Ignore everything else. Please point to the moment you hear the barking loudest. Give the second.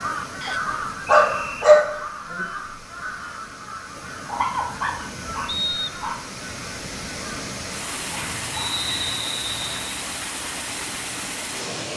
2 s.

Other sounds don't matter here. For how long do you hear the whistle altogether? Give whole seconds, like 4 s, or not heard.
3 s.